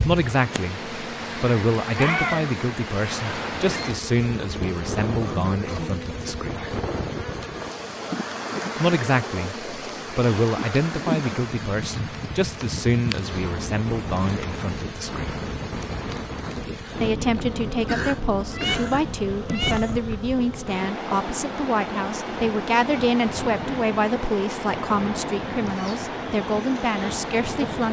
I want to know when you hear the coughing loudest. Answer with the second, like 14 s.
18 s.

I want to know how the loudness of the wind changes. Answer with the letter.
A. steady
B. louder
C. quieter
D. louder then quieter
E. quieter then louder
A.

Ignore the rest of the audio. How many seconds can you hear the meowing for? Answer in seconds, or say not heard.
2 s.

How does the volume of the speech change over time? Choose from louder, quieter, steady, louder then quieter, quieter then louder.
steady.